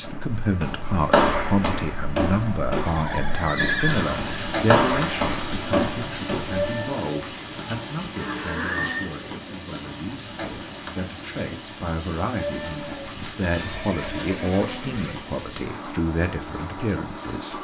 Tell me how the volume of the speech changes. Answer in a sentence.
The loudness of the speech goes down, then up.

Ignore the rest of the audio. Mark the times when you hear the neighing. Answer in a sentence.
You can hear the neighing from 2.8 to 4.2 s, from 8.2 to 9.1 s and from 12.5 to 15.2 s.